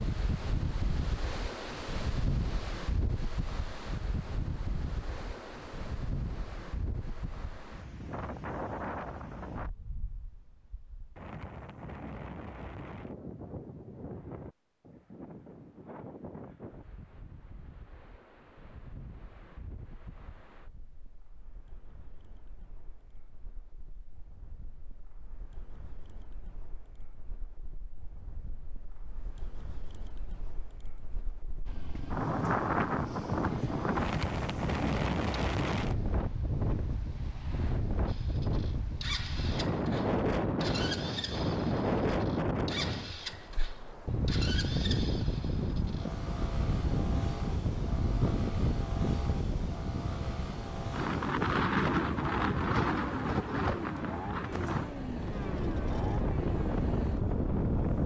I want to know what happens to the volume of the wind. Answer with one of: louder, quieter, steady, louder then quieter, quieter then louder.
quieter then louder.